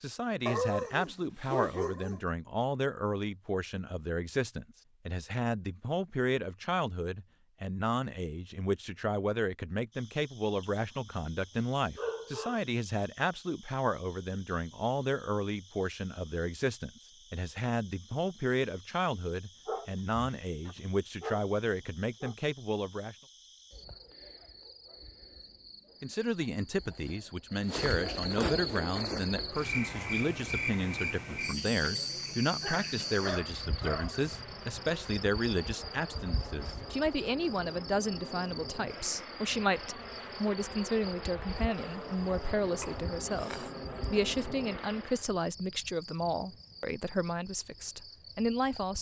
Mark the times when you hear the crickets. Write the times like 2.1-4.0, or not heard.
9.9-48.9.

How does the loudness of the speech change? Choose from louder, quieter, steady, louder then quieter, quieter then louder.
steady.